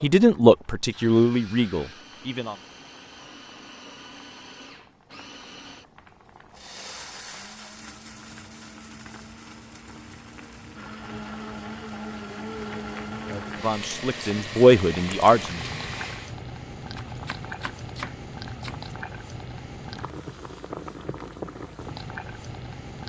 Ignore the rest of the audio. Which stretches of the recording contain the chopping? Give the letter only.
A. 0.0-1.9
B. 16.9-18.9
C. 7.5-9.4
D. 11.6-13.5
B.